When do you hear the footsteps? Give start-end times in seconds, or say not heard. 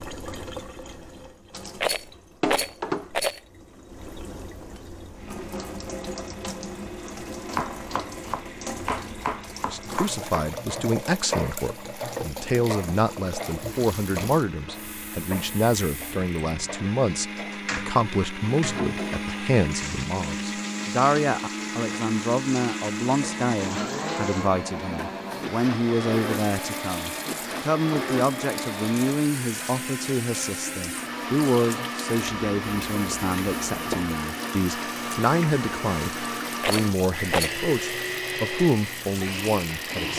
not heard.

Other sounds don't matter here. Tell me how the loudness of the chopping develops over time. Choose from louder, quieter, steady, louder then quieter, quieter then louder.
quieter.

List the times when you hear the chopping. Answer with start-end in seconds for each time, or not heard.
7.5-17.7.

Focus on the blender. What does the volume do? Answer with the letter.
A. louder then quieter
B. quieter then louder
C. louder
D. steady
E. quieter
C.